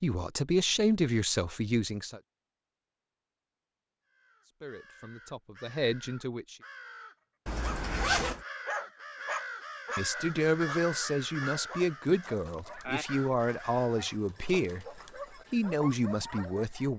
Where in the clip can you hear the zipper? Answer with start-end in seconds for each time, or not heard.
7.5-8.4.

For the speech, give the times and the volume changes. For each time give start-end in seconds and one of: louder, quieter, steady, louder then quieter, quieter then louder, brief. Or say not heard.
0.0-2.2 brief
4.5-6.5 brief
9.9-16.9 steady.